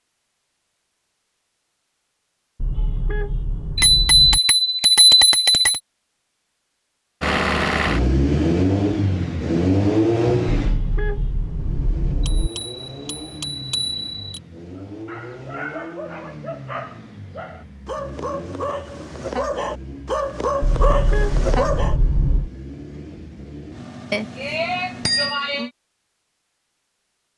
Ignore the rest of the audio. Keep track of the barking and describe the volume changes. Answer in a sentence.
The volume of the barking goes up.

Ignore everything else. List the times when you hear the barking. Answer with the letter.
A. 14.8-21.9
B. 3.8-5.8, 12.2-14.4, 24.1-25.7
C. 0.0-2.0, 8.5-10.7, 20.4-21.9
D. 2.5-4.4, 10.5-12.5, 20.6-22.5
A.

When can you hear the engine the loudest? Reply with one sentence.
The volume of the engine peaks at 10 seconds.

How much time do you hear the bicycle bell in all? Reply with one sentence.
You can hear the bicycle bell for 6 seconds altogether.